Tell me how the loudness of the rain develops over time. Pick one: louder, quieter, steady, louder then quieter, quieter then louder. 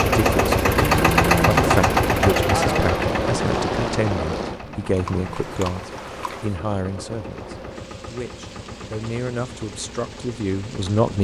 quieter.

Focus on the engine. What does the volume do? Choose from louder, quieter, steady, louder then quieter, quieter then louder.
quieter.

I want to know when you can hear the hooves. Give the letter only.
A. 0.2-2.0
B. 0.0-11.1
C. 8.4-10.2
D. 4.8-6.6
D.